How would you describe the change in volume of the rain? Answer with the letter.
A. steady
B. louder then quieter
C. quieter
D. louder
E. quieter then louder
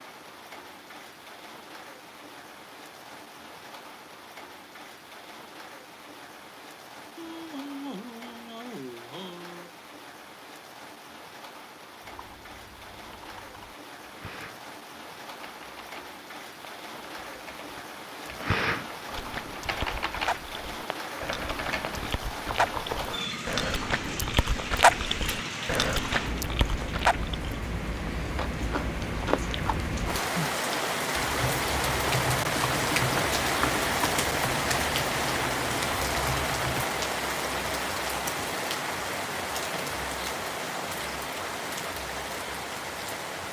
D.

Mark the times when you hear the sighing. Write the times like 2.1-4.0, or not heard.
7.2-9.7.